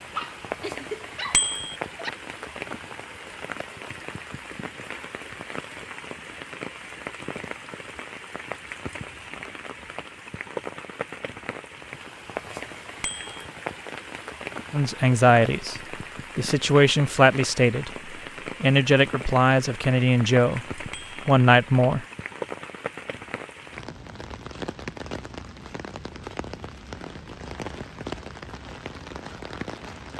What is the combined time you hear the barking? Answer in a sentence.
You can hear the barking for 2 seconds altogether.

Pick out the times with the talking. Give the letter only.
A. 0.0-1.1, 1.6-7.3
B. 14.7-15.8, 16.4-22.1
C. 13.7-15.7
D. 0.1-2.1
B.